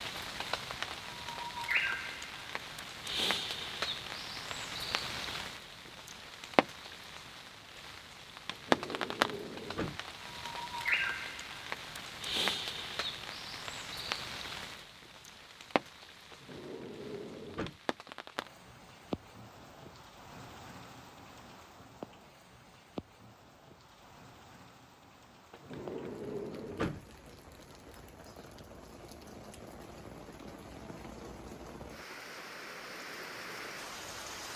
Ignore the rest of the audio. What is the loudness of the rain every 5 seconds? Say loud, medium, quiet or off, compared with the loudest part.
loud, loud, loud, medium, quiet, quiet, medium.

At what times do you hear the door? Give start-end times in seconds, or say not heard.
8.5-10.0, 16.3-17.8, 25.5-27.1.